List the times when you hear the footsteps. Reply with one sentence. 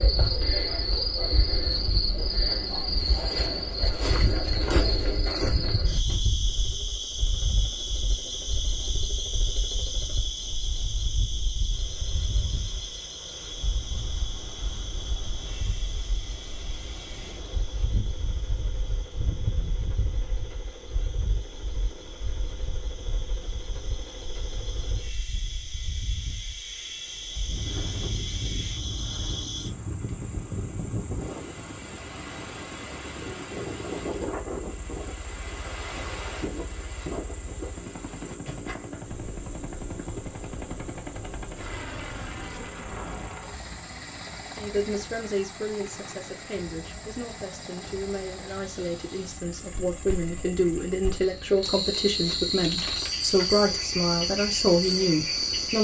The footsteps can't be heard in this clip.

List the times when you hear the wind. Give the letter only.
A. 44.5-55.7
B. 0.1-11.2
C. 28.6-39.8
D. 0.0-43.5
D.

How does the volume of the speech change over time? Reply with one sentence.
The loudness of the speech goes up.